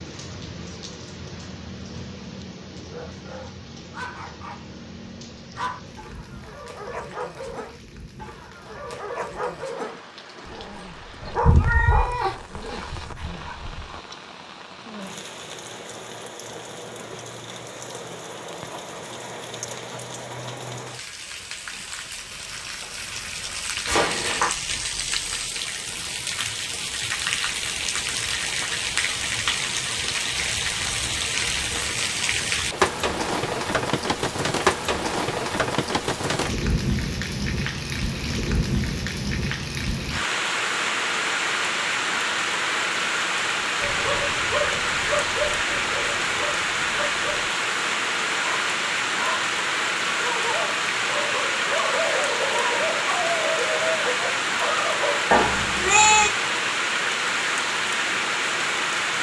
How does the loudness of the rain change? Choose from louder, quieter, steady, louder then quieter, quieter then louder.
louder.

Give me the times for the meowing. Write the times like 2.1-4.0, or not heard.
11.4-12.8, 23.9-24.5, 55.3-56.3.